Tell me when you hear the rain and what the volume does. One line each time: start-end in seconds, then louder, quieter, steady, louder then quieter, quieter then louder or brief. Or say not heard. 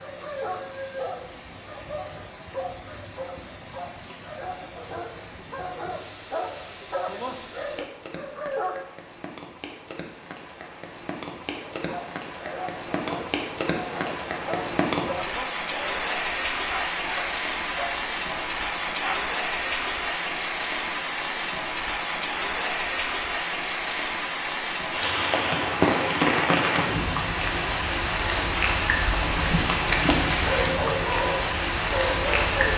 0.0-32.7 louder.